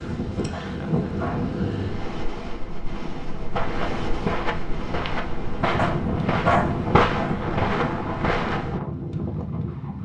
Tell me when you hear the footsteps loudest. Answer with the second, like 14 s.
7 s.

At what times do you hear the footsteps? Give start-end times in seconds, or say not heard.
3.5-8.8.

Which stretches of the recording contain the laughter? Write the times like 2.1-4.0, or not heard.
0.6-1.2.